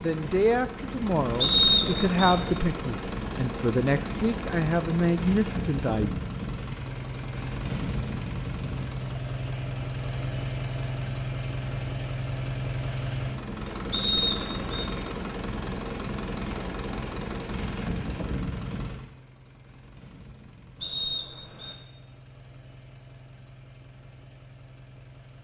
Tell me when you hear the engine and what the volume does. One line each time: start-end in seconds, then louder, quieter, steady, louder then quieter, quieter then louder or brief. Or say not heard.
0.0-25.3 quieter.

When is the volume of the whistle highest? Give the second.
2 s.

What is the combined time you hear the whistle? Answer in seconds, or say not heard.
3 s.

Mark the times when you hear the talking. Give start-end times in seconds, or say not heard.
0.0-6.2.